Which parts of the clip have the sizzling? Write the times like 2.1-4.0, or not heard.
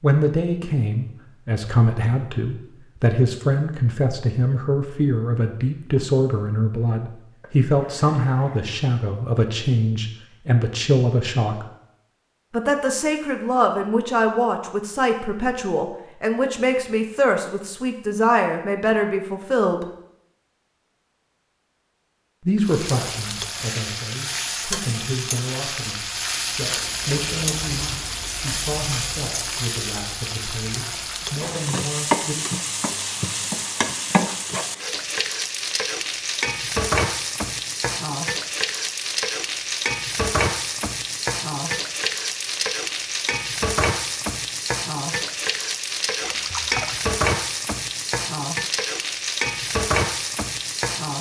22.6-51.1.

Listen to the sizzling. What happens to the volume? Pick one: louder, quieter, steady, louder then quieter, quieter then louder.
steady.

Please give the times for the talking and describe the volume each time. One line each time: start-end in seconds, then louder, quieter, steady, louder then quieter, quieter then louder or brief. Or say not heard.
0.0-11.7 steady
12.5-19.9 steady
22.4-32.4 steady.